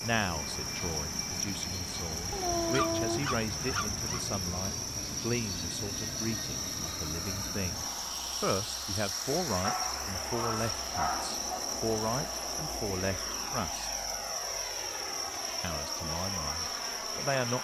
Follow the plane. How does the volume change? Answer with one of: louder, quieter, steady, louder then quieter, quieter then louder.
steady.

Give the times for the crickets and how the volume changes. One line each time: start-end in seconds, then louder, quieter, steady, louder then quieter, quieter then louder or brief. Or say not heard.
0.0-17.5 steady.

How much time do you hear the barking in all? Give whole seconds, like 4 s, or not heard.
4 s.